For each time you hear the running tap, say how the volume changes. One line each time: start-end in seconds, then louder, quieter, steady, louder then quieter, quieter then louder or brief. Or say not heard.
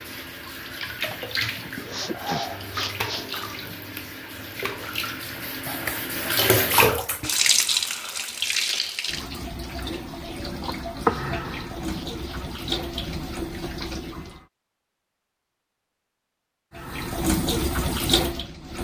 0.0-14.4 louder then quieter
16.8-18.7 brief.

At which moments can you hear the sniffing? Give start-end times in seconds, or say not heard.
1.9-3.2, 11.1-12.4.